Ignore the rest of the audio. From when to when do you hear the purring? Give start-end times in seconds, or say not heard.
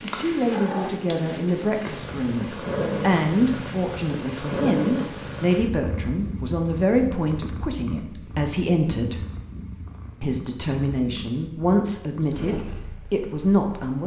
0.0-14.0.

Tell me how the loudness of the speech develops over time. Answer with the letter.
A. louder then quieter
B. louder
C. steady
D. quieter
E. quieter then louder
C.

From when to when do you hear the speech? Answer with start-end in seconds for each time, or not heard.
0.0-9.2, 10.2-14.0.